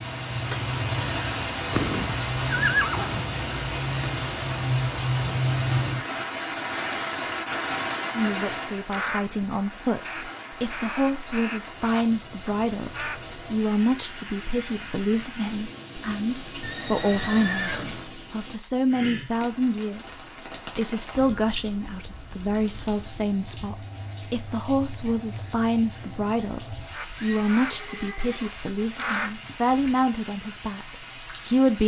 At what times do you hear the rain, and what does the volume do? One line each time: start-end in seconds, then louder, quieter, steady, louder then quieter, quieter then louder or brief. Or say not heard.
0.0-31.8 quieter.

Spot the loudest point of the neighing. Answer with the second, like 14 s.
3 s.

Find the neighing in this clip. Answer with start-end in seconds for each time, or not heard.
1.7-3.2, 16.6-18.1, 27.1-28.6.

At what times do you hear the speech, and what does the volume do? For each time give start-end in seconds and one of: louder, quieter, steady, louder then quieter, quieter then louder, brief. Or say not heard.
8.2-31.8 steady.